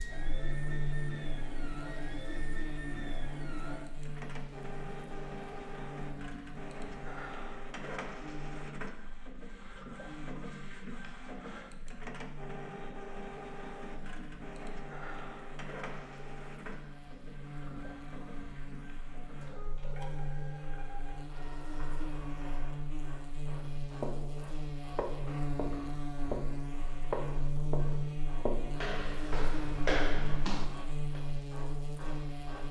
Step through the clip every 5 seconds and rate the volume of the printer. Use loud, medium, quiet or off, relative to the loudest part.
loud, loud, loud, loud, medium, medium, medium.